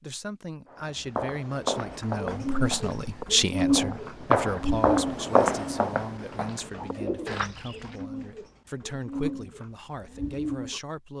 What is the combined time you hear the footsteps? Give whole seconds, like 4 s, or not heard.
7 s.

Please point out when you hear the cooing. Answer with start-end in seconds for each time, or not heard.
1.8-10.8.